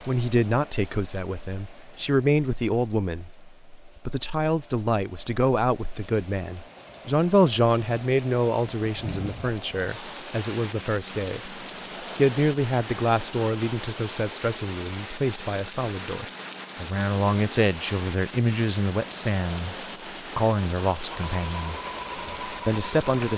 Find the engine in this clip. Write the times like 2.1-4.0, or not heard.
21.1-23.3.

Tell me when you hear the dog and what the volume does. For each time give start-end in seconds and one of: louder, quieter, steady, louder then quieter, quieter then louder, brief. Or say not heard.
not heard.